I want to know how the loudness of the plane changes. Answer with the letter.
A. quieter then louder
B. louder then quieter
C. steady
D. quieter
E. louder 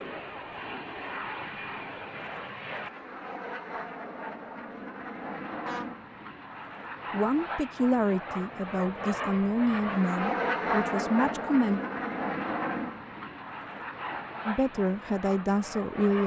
B.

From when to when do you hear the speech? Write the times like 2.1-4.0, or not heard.
7.1-11.8, 14.4-16.2.